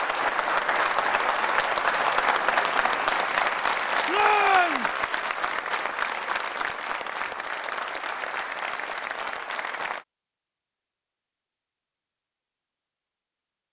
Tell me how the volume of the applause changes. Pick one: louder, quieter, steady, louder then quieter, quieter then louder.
quieter.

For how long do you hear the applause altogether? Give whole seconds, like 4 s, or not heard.
10 s.